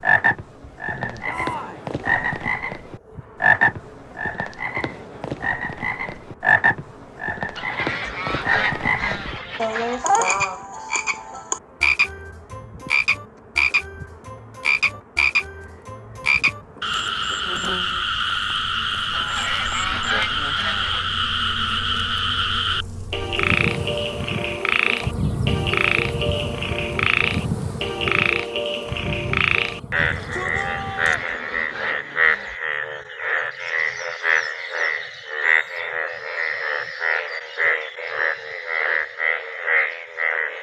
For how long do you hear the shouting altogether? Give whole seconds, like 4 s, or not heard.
2 s.